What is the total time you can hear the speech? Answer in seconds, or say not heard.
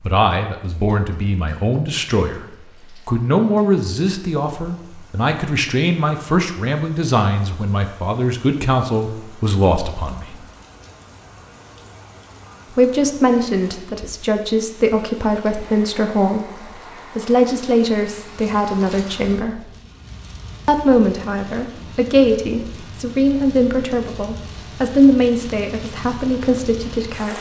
24 s.